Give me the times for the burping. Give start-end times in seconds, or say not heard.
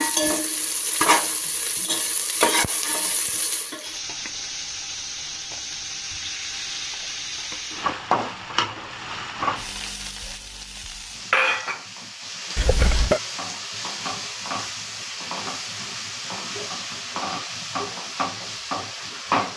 12.6-13.2.